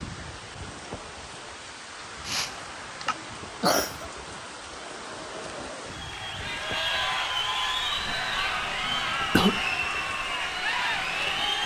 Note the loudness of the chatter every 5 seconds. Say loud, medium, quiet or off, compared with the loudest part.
quiet, loud, loud.